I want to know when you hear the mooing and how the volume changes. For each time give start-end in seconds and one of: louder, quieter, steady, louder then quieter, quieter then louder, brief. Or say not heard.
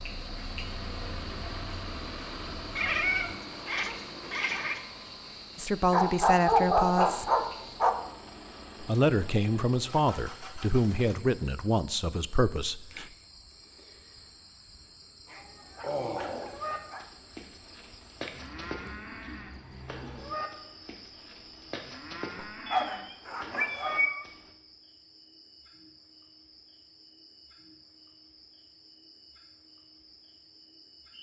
16.0-24.5 steady.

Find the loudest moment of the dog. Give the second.
7 s.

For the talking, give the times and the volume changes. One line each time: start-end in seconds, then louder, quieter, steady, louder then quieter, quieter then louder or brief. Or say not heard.
5.5-7.3 brief
8.8-13.1 steady.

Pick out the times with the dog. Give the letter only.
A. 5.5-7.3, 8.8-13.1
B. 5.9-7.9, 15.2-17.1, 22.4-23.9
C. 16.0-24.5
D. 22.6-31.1
B.